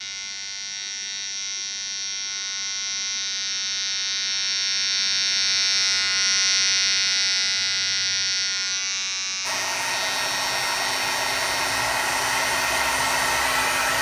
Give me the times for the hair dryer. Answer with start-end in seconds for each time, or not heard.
9.4-13.9.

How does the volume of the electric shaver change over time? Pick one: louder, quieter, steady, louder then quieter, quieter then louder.
louder then quieter.